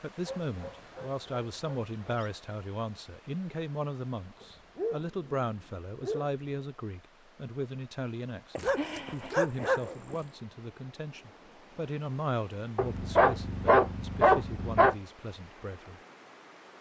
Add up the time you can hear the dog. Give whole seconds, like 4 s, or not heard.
8 s.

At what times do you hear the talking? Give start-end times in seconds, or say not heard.
0.0-16.0.